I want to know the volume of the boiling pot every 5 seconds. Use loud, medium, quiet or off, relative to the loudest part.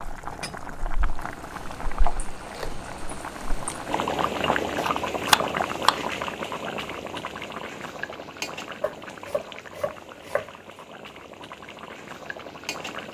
loud, loud, medium.